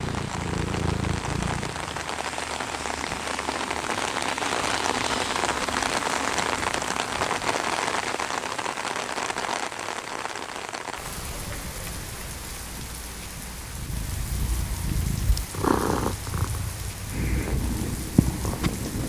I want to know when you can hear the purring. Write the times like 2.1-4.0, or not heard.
0.0-2.1, 13.7-19.0.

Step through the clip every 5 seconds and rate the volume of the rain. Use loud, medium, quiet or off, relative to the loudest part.
loud, loud, medium, quiet.